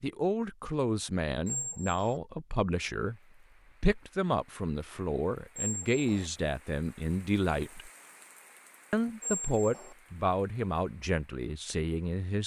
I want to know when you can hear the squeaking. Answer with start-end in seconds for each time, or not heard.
1.4-2.2, 5.5-6.3, 9.2-9.9.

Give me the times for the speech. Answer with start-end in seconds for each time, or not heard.
0.0-3.2, 3.8-7.9, 8.9-12.4.